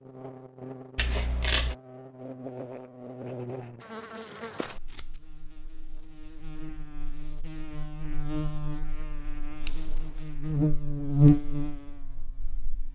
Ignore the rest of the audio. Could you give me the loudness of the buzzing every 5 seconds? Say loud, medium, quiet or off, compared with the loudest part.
quiet, quiet, loud.